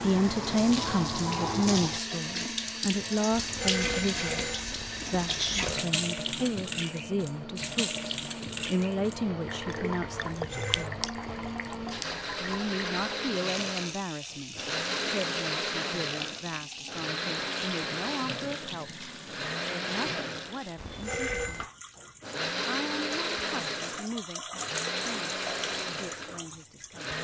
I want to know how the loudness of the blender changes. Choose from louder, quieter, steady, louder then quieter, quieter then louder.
louder.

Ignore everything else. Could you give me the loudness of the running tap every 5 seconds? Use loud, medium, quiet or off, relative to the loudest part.
loud, loud, medium, medium, medium, medium.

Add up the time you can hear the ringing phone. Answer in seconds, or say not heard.
4 s.